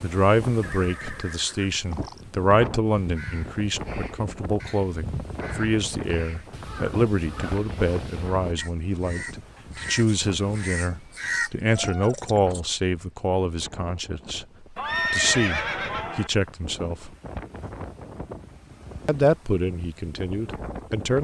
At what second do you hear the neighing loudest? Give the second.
15 s.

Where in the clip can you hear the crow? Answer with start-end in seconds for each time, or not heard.
2.9-12.6.